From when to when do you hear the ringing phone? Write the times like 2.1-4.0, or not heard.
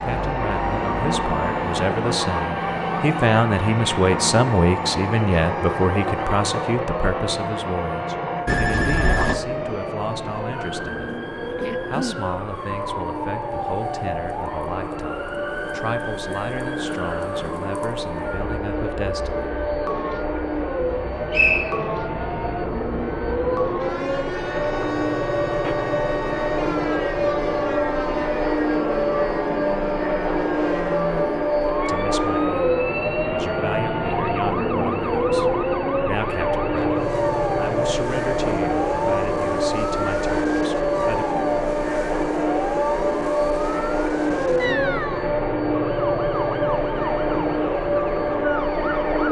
8.4-9.4.